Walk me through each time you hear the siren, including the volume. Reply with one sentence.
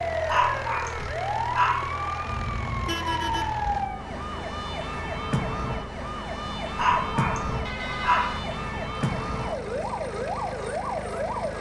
The siren can be heard from 0.0 to 11.5 s, at a steady volume.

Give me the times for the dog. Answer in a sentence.
You can hear the dog from 0.2 to 1.9 s and from 6.8 to 8.3 s.